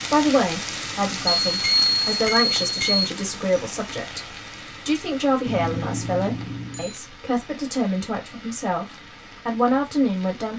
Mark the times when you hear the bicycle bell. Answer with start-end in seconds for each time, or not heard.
1.4-3.1, 5.5-7.0.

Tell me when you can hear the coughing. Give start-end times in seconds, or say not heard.
not heard.